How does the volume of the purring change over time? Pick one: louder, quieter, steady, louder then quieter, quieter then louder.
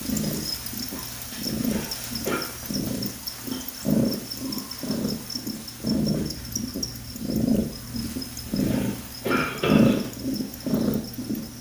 louder.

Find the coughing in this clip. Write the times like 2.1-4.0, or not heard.
1.5-2.4, 8.4-10.0.